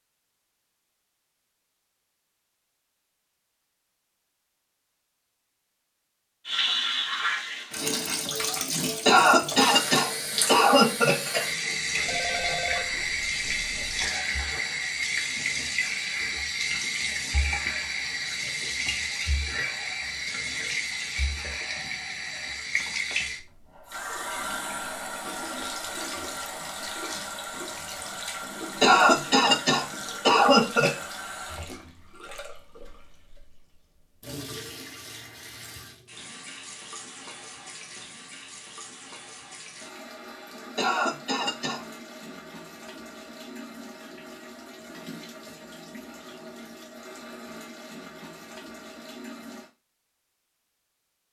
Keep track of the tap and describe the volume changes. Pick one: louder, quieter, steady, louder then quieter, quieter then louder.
quieter.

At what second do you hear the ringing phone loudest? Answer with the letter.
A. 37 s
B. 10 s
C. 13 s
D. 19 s
C.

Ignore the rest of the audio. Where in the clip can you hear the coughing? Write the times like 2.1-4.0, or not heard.
9.1-11.4, 28.8-31.1, 40.8-41.8.